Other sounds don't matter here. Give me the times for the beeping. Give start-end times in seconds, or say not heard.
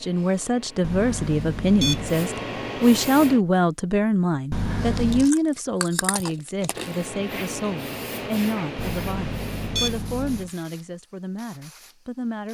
0.8-2.2, 4.5-5.3, 8.8-10.5.